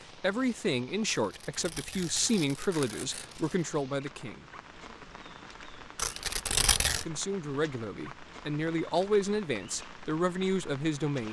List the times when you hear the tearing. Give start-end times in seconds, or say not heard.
1.2-3.6, 6.0-7.0.